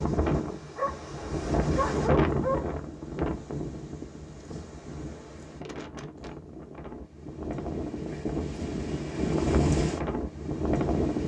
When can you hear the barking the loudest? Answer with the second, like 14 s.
2 s.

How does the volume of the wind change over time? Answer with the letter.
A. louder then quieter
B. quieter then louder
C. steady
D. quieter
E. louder
B.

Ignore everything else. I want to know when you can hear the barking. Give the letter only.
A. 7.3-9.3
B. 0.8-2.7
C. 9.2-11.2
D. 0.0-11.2
B.